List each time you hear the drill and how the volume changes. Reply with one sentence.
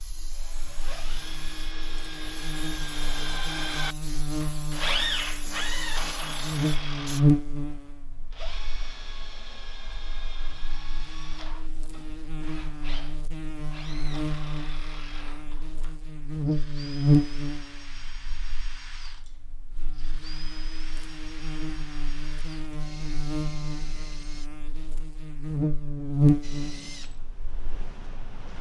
You can hear the drill from 0.2 to 24.5 s, getting quieter; and briefly from 26.4 to 28.5 s.